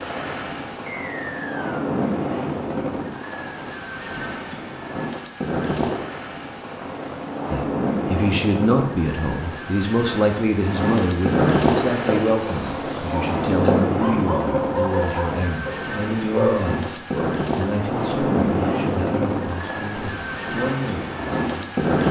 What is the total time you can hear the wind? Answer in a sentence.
The wind can be heard for 22 seconds in total.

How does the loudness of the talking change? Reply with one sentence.
The volume of the talking goes down.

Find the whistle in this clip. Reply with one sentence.
You can hear the whistle from 0.8 to 1.9 s.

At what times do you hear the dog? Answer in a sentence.
The dog can be heard from 11.8 to 17.2 s.